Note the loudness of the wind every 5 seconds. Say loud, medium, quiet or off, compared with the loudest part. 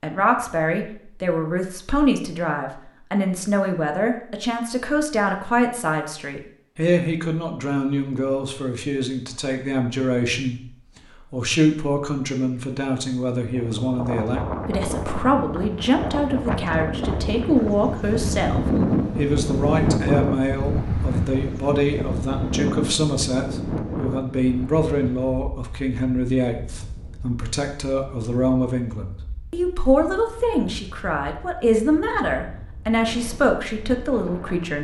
off, off, medium, loud, loud, quiet, quiet.